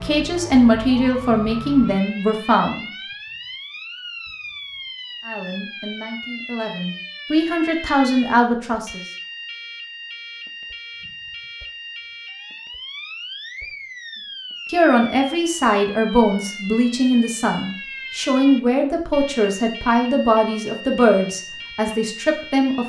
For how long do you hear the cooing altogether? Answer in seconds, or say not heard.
not heard.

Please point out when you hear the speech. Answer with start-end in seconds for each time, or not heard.
0.0-2.9, 5.2-9.0, 14.7-22.8.